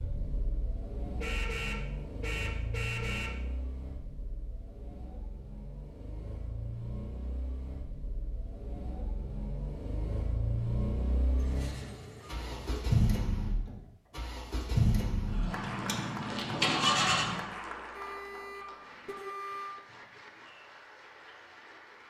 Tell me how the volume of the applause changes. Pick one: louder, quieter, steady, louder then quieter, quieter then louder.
quieter.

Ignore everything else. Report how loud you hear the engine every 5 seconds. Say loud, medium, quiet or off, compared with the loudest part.
quiet, quiet, loud, loud, off.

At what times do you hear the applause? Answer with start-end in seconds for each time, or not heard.
15.5-22.0.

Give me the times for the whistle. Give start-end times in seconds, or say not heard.
not heard.